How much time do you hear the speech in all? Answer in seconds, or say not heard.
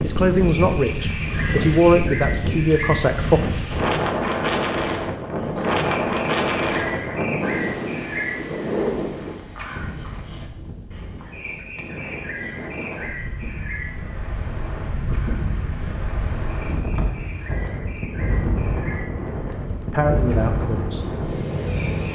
5 s.